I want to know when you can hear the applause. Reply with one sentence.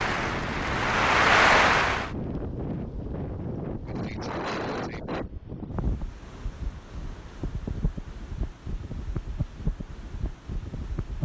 You can hear the applause from 0.0 to 2.1 s.